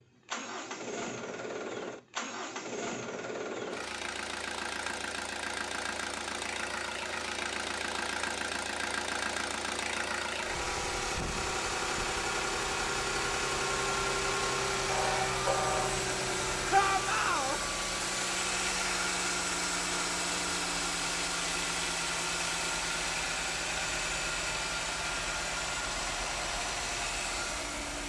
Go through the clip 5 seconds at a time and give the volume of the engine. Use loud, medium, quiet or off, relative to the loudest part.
medium, loud, loud, loud, loud, loud.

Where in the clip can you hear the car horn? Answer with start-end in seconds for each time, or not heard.
14.8-16.0.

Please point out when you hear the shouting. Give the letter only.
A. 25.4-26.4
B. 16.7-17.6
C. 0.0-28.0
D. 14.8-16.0
B.